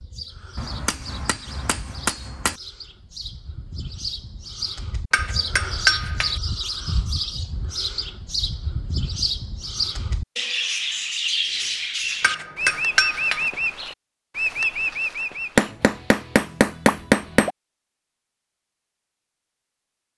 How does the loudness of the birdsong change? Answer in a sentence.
The volume of the birdsong goes up.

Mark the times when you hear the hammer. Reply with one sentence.
You can hear the hammer from 0.6 to 2.5 s, from 5.1 to 6.3 s, from 12.2 to 13.5 s and from 15.6 to 17.5 s.